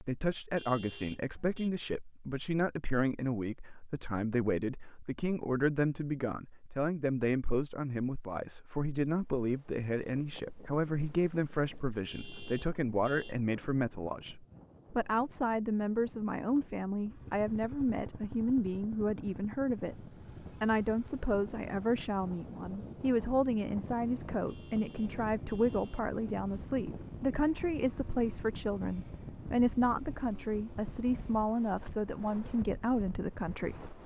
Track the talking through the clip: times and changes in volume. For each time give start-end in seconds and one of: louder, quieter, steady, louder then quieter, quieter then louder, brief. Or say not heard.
0.0-33.9 steady.